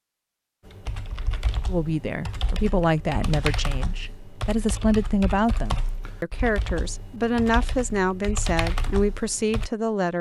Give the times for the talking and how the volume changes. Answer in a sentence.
You can hear the talking from 1.6 to 10.1 s, at a steady volume.